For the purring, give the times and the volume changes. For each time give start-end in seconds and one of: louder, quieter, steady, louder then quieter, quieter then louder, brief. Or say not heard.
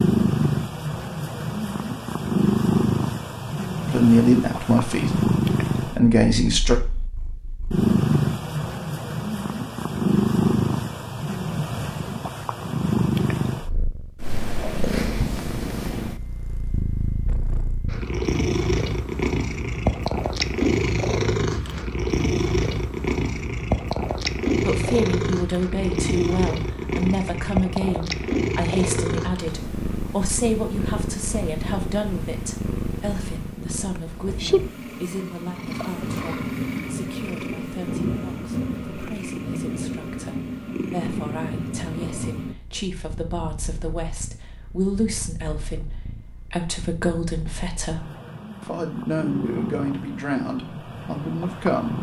0.0-51.9 quieter.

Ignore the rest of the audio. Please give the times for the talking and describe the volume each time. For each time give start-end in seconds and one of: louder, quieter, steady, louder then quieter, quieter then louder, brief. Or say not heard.
3.9-6.8 brief
24.6-51.9 quieter then louder.